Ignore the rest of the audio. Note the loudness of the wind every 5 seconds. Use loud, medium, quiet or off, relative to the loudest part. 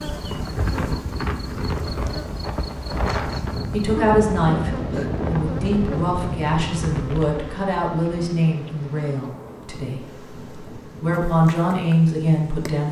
loud, loud, quiet.